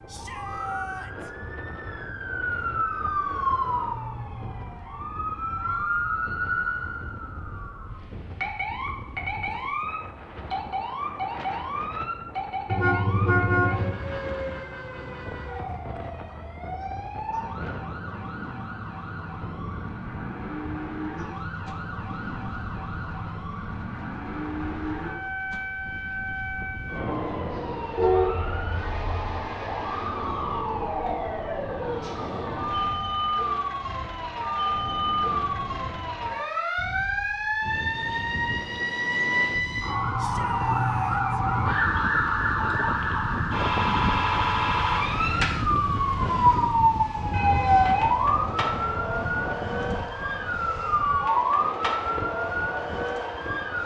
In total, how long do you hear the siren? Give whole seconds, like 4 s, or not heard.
54 s.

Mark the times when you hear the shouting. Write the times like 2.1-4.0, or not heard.
0.1-1.3, 40.1-41.4.